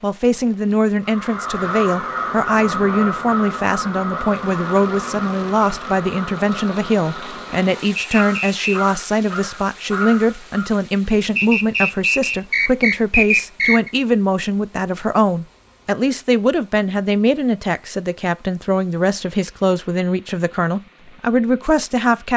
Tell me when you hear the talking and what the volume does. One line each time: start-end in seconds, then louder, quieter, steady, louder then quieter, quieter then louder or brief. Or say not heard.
0.0-22.3 steady.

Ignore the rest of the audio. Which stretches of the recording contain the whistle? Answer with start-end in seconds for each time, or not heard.
8.0-8.8, 11.3-13.9.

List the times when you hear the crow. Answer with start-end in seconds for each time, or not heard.
1.1-10.7.